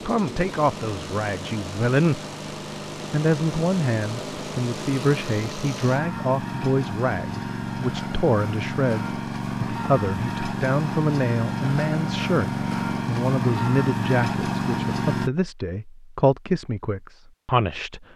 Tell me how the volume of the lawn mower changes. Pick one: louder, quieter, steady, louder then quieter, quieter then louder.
louder.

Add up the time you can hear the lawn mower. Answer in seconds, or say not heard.
15 s.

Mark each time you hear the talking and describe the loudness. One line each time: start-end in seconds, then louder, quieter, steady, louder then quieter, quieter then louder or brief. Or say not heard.
0.1-2.2 brief
3.1-18.1 steady.